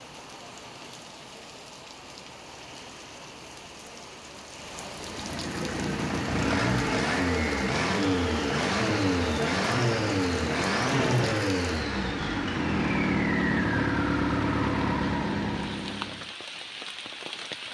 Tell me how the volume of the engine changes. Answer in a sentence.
The loudness of the engine stays about the same.